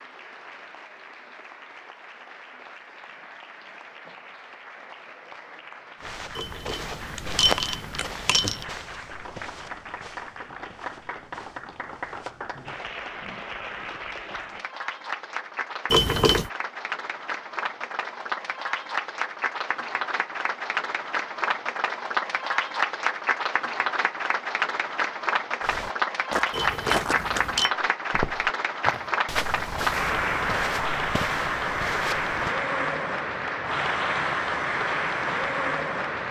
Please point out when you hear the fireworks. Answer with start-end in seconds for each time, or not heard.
not heard.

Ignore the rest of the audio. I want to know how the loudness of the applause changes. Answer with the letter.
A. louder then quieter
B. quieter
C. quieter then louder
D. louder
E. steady
D.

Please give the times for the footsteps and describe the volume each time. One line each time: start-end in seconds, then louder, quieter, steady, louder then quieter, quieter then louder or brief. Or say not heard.
6.0-12.9 quieter
25.6-32.5 quieter.